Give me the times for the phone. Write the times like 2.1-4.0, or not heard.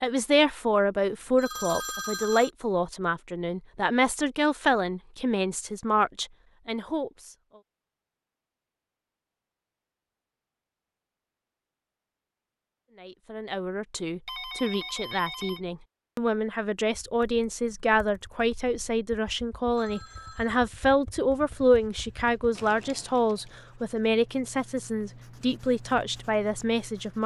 1.4-2.5, 14.2-15.6, 19.8-20.5.